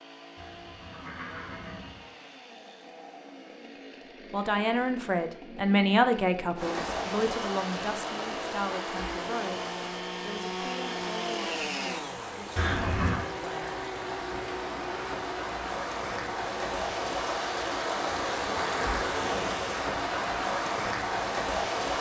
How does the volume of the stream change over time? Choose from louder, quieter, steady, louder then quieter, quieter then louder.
quieter then louder.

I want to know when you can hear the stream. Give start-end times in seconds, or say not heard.
6.5-21.9.